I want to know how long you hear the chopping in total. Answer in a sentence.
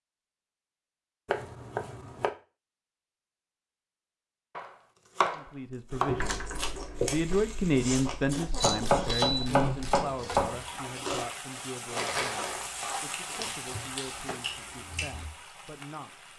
The chopping can be heard for 6 seconds in total.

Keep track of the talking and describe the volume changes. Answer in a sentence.
The loudness of the talking goes down.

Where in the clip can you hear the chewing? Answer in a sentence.
The chewing can be heard from 6.2 to 15.3 s.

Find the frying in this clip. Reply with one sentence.
You can hear the frying from 5.9 to 16.3 s.